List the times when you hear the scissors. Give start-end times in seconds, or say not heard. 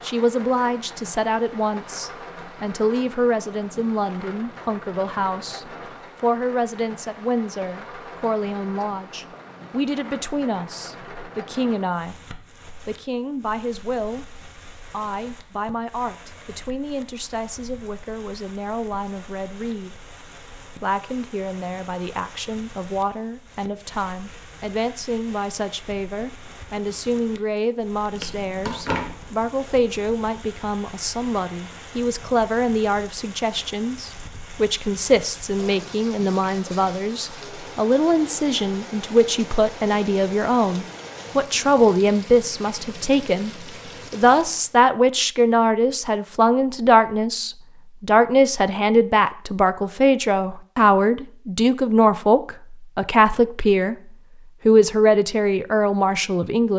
28.1-29.1.